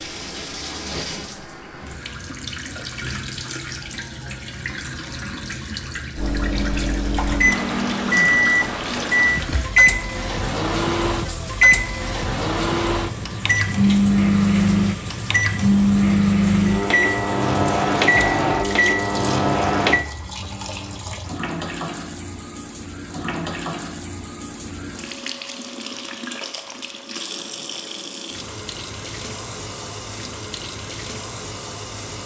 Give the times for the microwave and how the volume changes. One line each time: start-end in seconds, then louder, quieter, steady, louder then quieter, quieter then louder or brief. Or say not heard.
6.2-20.1 steady.